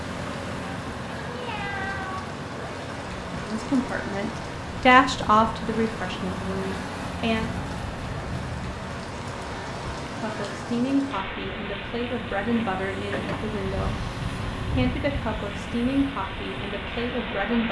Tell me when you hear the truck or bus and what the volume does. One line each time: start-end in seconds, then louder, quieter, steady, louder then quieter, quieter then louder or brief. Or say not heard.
0.0-17.6 steady.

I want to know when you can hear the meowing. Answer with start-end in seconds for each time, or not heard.
1.2-2.2.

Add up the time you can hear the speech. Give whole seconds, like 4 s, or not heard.
11 s.